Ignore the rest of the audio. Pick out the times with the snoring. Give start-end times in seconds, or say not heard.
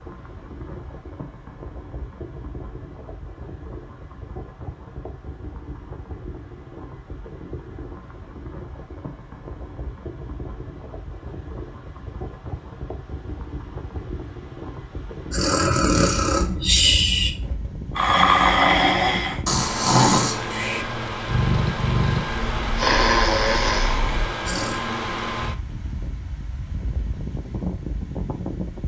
15.3-24.8.